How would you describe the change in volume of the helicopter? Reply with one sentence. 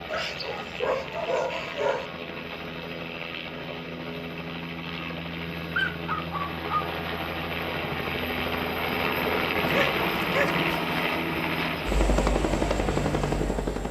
The volume of the helicopter goes up.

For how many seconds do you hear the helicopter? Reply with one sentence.
You can hear the helicopter for 14 seconds altogether.